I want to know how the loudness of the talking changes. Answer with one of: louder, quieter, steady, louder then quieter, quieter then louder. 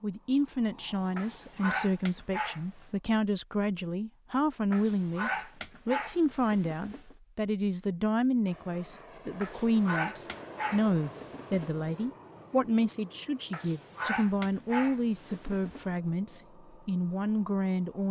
steady.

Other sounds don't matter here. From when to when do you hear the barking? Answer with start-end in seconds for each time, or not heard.
1.1-2.9, 4.7-7.2, 9.4-11.8, 13.5-15.9.